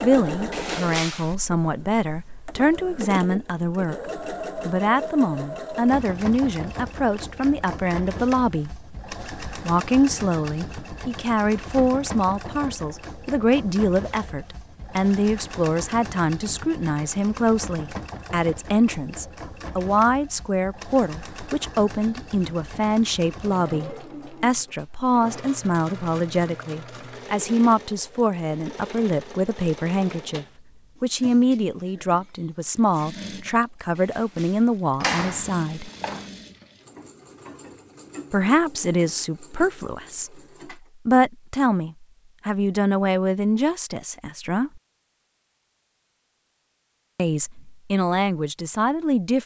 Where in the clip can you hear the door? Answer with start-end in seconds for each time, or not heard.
0.5-1.4, 34.0-36.3.